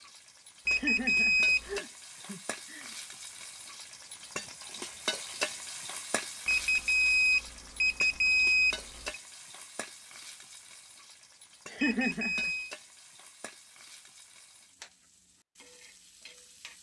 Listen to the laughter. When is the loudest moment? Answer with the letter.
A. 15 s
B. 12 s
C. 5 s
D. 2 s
B.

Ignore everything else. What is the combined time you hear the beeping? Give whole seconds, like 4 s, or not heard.
5 s.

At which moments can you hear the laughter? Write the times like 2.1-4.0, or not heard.
0.7-3.0, 11.7-12.5.